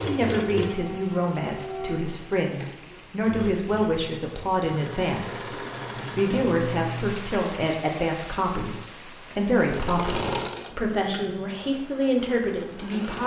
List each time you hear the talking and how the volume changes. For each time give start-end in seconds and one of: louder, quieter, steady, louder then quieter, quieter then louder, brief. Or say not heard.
0.1-13.2 steady.